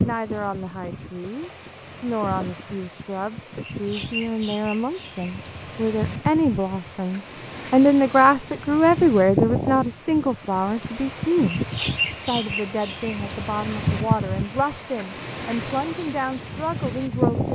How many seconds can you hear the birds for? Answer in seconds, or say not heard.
not heard.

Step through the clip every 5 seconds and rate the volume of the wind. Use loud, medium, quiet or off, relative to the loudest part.
medium, loud, loud, loud.